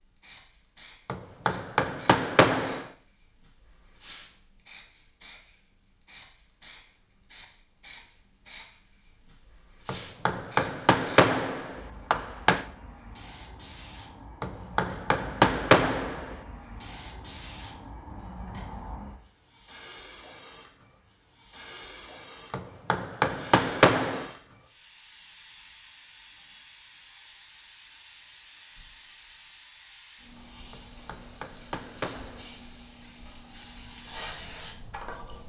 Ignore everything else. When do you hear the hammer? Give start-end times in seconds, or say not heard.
1.1-2.9, 9.8-12.7, 14.4-16.4, 22.5-24.3, 30.7-32.5.